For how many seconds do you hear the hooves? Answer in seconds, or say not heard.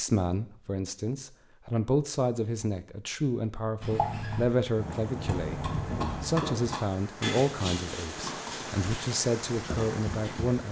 7 s.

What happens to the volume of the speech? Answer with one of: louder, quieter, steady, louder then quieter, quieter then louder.
steady.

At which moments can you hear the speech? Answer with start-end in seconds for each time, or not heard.
0.0-5.6, 6.2-10.6.